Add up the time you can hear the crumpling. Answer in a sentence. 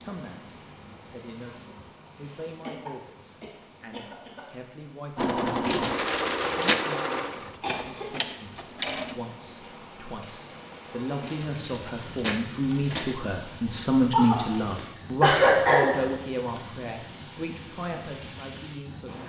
The crumpling can be heard for 3 seconds in total.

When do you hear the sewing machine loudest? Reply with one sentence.
The volume of the sewing machine peaks at 6 seconds.